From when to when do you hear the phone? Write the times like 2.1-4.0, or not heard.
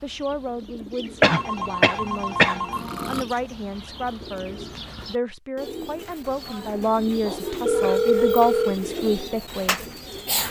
1.2-3.2, 7.7-8.8.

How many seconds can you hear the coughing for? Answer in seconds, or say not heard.
2 s.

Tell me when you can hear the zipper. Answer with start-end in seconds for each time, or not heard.
not heard.